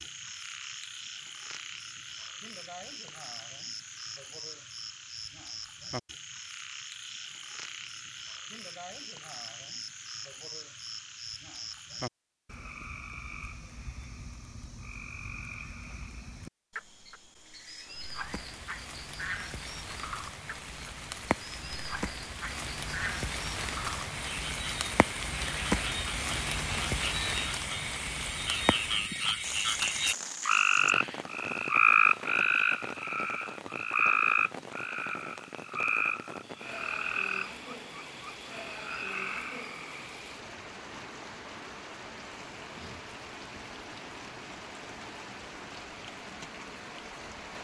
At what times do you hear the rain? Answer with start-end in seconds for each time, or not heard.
17.8-47.5.